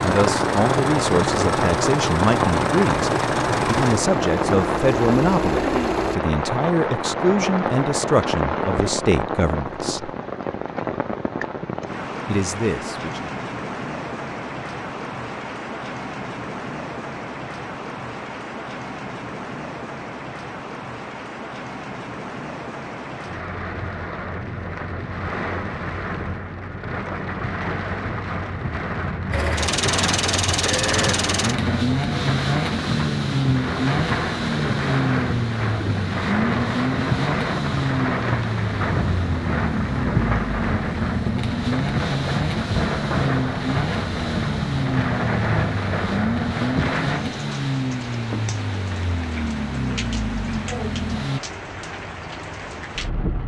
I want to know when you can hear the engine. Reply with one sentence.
The engine can be heard from 0.0 to 6.2 s and from 29.3 to 51.4 s.